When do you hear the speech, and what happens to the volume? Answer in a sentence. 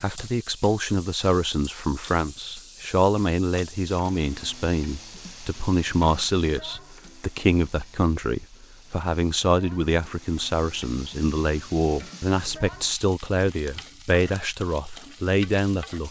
The speech can be heard from 0.0 to 16.0 s, at a steady volume.